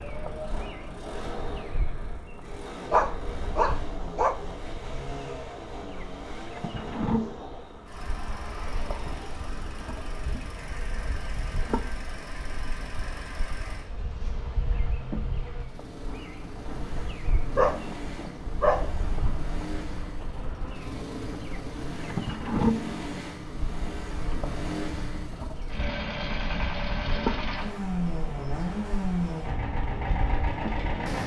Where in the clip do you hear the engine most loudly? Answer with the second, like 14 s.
29 s.